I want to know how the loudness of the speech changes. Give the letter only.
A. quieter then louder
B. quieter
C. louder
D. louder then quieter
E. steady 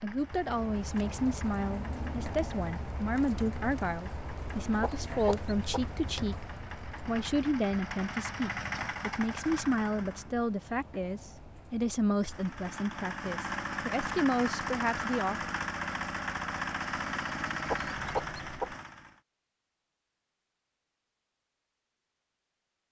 E.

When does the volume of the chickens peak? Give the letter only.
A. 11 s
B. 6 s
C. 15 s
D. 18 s
D.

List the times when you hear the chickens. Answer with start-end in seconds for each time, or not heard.
4.8-5.9, 17.6-18.8.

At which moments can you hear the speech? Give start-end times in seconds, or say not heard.
0.0-15.4.